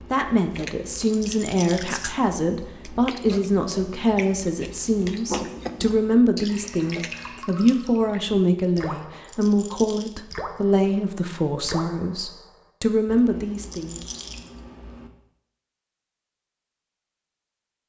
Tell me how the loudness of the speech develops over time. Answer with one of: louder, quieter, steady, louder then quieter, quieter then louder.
steady.